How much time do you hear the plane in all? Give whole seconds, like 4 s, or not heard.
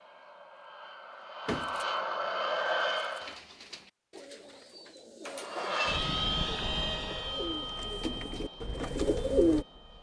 8 s.